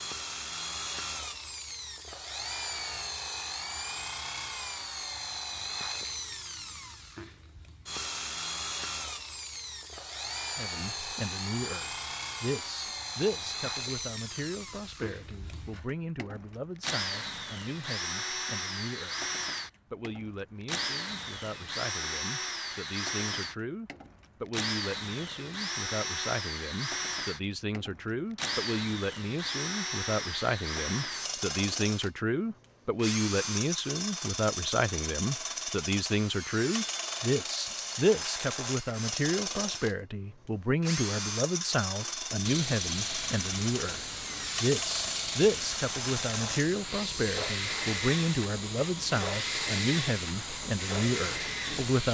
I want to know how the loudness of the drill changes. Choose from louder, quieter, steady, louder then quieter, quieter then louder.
steady.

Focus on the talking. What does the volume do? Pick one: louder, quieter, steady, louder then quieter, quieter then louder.
louder.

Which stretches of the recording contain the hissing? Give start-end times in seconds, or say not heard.
42.4-52.0.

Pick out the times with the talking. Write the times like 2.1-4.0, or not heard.
10.6-52.0.